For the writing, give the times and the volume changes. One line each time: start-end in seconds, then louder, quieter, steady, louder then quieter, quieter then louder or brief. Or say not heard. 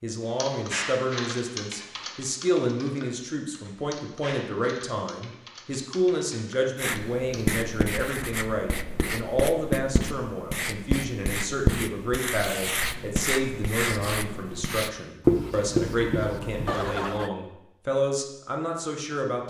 6.8-16.8 louder.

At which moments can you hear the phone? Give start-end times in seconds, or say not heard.
16.6-17.3.